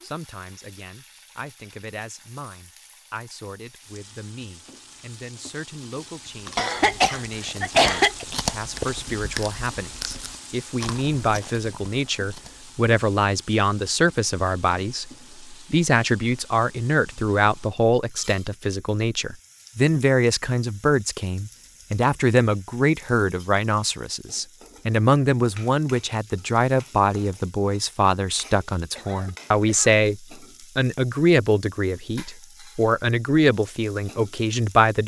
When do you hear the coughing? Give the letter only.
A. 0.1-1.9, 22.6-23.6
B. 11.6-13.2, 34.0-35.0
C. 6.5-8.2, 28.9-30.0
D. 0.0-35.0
C.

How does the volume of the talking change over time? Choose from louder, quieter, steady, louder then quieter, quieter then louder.
louder.